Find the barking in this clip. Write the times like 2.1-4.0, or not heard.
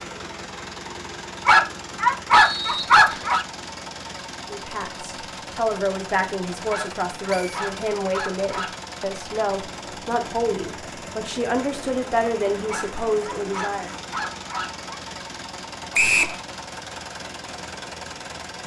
1.4-3.5, 6.7-8.8, 12.7-14.9.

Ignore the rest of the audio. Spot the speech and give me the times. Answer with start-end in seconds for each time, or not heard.
4.5-13.9.